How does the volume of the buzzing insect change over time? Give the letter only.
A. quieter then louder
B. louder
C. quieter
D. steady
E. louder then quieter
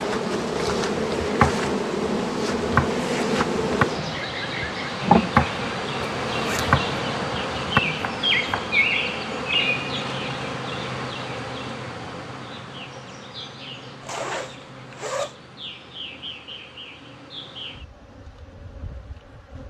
C.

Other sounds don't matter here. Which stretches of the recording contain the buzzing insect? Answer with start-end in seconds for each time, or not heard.
0.0-19.6.